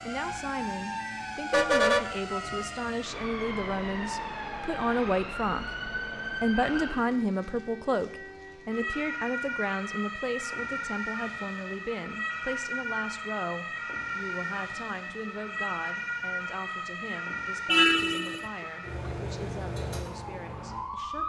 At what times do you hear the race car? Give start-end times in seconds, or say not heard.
not heard.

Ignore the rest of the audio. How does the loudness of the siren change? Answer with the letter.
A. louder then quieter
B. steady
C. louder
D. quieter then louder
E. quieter
B.